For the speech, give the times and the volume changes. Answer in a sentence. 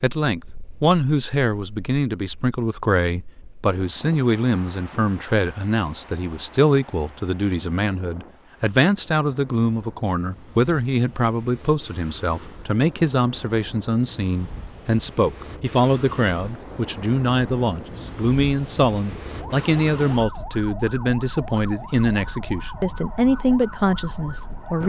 You can hear the speech from 0.0 to 24.8 s, at a steady volume.